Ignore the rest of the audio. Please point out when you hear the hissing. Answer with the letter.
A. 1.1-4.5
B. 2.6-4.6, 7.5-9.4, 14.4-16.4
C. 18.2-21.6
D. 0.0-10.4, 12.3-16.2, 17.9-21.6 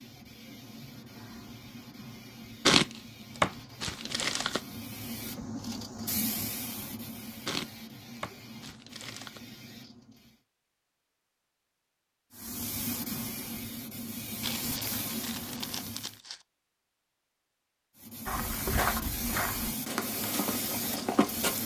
D.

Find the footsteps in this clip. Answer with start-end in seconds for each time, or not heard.
18.2-21.6.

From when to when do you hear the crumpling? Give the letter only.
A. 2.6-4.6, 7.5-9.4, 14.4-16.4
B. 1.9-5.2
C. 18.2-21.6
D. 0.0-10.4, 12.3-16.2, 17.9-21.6
A.